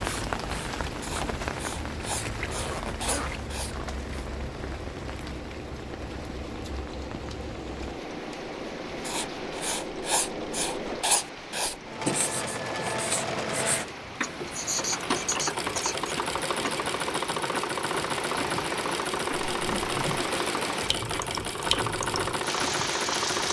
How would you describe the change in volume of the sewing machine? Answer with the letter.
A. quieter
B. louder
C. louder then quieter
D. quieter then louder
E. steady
B.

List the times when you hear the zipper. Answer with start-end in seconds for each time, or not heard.
2.4-3.5, 19.6-20.3.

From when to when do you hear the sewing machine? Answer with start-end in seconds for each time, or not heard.
0.0-23.4.